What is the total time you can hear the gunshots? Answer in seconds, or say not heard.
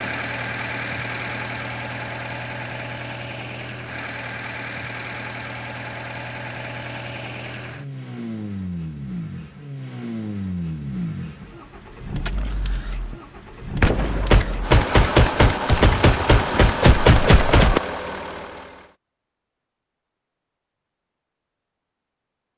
4 s.